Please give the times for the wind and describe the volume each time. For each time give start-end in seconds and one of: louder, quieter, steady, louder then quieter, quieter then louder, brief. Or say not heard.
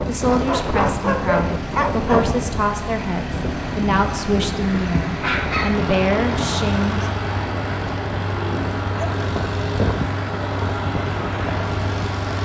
0.0-12.3 steady.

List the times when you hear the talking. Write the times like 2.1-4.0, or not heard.
0.0-7.1.